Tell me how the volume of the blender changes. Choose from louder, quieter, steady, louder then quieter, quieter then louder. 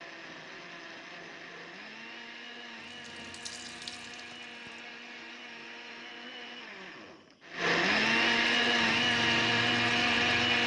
louder.